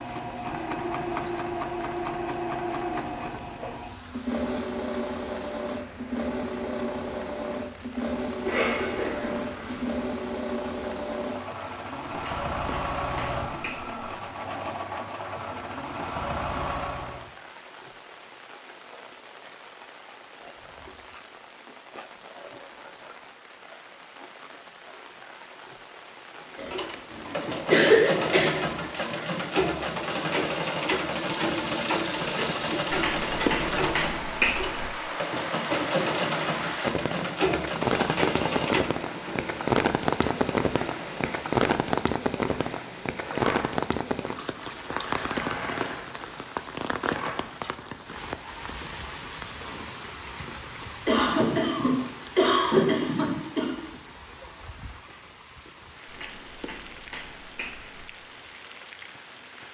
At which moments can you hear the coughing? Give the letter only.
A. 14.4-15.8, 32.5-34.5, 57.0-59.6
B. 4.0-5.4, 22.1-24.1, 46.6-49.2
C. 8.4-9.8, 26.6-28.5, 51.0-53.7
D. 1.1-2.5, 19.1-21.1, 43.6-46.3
C.